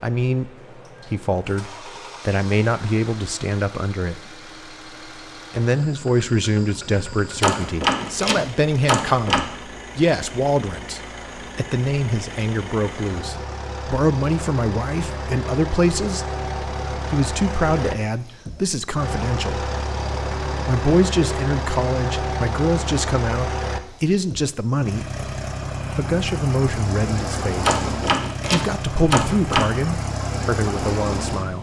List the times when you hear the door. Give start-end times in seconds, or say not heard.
7.4-9.4, 27.6-29.6.